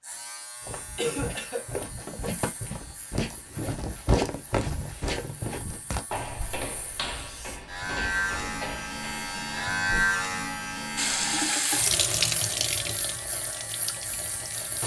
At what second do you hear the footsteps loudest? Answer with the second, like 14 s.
4 s.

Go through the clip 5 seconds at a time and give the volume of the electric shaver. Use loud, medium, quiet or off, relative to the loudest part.
quiet, loud, loud.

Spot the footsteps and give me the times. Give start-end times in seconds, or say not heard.
0.6-10.2.